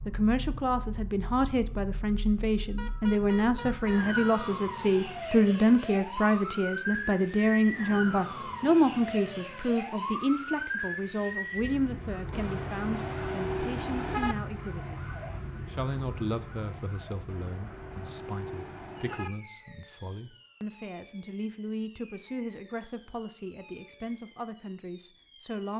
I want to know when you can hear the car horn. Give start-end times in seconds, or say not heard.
2.8-4.6, 12.3-14.3, 17.2-19.3.